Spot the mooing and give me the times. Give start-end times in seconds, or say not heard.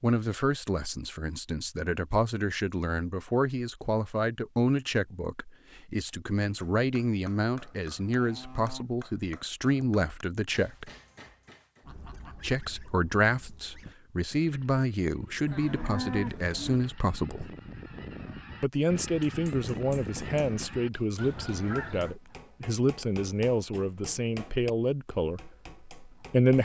7.6-8.8, 15.4-16.9.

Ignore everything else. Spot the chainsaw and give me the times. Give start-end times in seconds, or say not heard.
not heard.